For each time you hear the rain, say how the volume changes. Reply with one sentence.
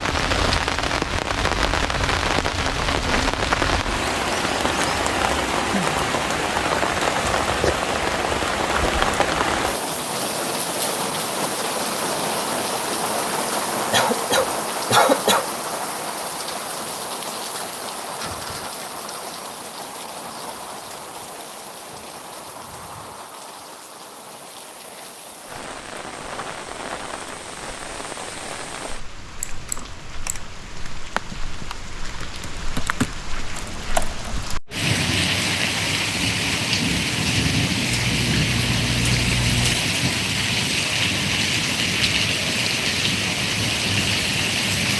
You can hear the rain from 0.0 to 44.9 s, getting quieter then louder.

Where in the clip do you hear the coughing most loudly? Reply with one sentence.
The volume of the coughing peaks at 15 seconds.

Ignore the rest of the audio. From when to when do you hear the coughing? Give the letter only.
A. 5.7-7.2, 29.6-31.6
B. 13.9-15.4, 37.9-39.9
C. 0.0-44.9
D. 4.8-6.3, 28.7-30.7
B.